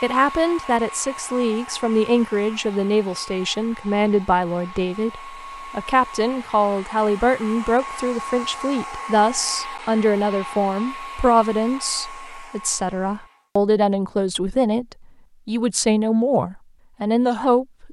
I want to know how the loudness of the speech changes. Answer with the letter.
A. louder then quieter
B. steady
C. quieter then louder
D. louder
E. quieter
B.